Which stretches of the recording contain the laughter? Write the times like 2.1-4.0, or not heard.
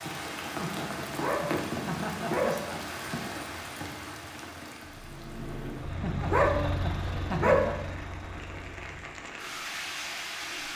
0.6-2.8, 6.0-7.8.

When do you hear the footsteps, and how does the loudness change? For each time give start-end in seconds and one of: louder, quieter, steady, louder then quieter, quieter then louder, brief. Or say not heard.
not heard.